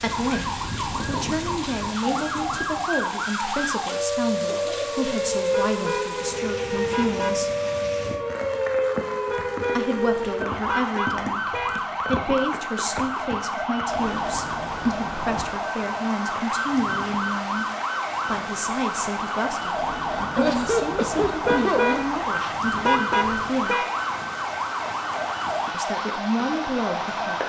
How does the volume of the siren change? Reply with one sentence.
The volume of the siren stays about the same.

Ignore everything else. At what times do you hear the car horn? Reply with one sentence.
You can hear the car horn from 5.5 to 7.4 s, from 9.2 to 11.8 s and from 21.4 to 23.9 s.